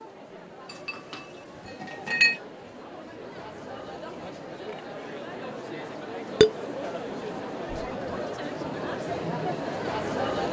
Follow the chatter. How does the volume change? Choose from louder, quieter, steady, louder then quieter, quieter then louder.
louder.